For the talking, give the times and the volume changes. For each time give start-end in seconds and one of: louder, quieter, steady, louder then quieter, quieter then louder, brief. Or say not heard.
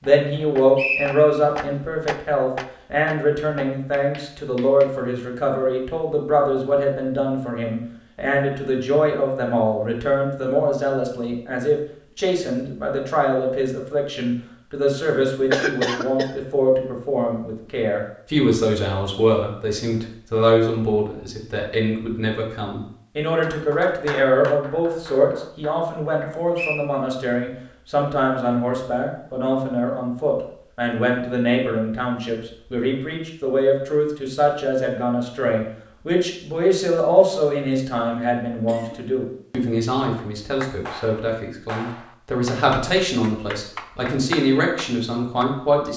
0.0-45.9 steady.